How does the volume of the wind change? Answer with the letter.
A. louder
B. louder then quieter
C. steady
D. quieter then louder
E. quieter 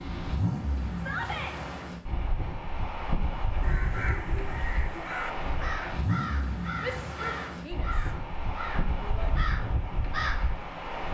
C.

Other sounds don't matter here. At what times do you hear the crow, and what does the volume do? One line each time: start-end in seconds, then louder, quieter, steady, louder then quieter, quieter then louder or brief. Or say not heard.
3.6-10.5 steady.